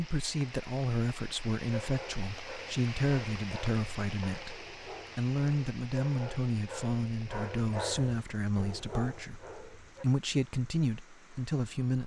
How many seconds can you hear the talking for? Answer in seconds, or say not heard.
12 s.